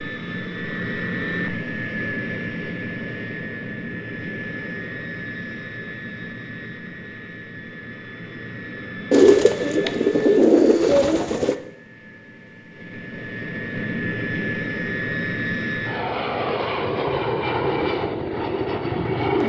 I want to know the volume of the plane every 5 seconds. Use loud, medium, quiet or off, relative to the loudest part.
medium, medium, medium, loud.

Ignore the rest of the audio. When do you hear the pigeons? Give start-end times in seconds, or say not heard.
9.1-11.6.